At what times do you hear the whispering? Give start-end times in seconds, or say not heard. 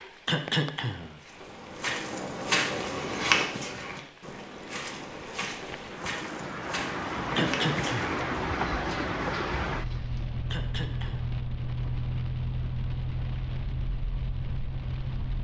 not heard.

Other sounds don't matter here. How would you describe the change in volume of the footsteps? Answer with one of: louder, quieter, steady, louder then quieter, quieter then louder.
quieter.